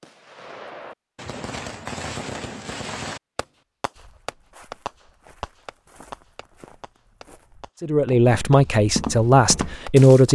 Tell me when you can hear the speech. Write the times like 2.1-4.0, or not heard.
7.8-10.3.